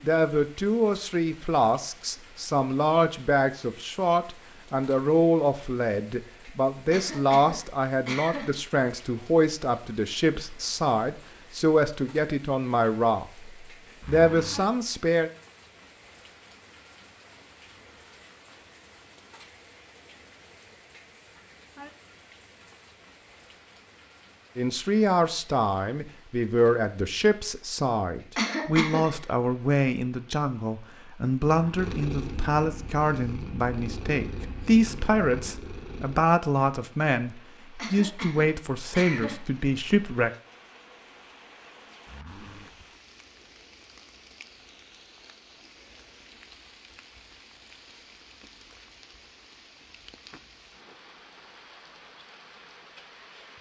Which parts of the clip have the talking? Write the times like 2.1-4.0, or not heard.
0.0-15.3, 24.6-40.3.